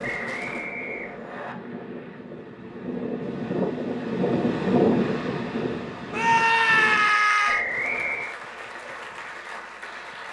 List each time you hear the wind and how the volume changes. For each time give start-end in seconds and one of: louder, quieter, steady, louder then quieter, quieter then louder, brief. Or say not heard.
0.0-7.3 louder then quieter.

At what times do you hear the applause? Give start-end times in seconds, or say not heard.
0.0-2.2, 7.7-10.2.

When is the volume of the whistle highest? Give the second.
8 s.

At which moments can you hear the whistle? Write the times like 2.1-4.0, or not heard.
0.0-1.6, 7.5-8.3.